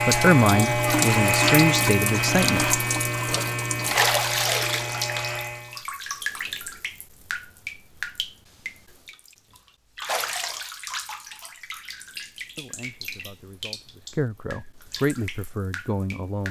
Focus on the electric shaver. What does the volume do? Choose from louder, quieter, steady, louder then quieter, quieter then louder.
quieter.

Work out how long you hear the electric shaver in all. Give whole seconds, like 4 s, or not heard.
6 s.